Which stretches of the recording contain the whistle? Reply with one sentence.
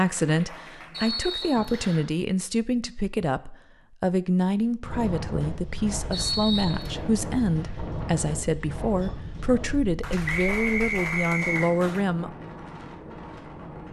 The whistle can be heard from 0.9 to 2.0 s, from 6.1 to 7.0 s and from 10.2 to 11.7 s.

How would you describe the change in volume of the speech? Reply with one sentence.
The volume of the speech stays about the same.